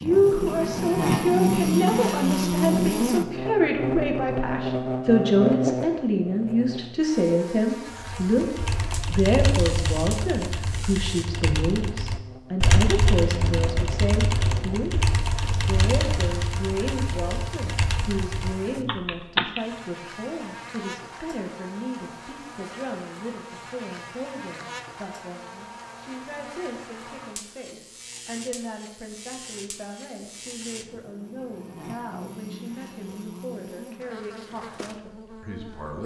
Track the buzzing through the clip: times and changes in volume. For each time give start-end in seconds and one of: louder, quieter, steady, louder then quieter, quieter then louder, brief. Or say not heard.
0.0-36.0 quieter.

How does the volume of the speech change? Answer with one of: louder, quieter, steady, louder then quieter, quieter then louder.
quieter.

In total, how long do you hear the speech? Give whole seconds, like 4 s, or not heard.
36 s.